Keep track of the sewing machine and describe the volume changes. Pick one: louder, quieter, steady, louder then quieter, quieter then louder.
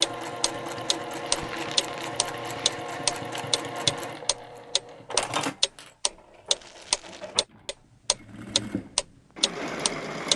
quieter then louder.